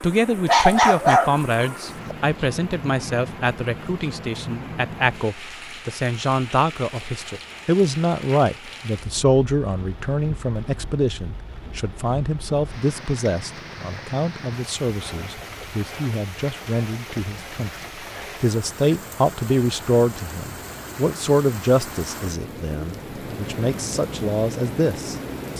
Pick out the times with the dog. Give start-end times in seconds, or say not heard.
0.5-2.1.